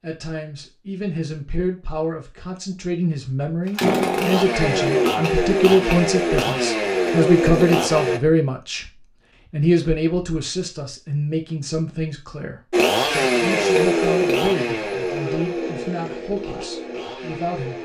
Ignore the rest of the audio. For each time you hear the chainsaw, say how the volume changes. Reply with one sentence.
You can hear the chainsaw from 3.6 to 8.2 s, at a steady volume; and from 12.7 to 17.8 s, getting quieter.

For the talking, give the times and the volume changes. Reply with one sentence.
You can hear the talking from 0.0 to 17.8 s, getting louder then quieter.